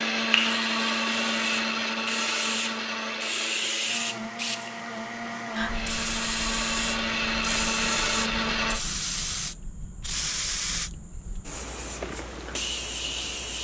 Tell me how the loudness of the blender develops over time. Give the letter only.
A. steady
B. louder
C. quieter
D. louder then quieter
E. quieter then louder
E.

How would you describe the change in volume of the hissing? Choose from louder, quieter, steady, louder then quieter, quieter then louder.
steady.